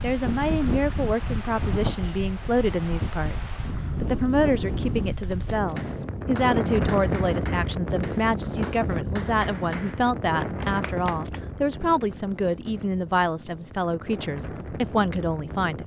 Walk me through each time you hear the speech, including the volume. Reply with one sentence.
The speech can be heard from 0.0 to 15.8 s, at a steady volume.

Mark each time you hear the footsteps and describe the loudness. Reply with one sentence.
You can't hear the footsteps here.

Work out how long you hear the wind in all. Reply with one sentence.
The wind can be heard for 16 seconds in total.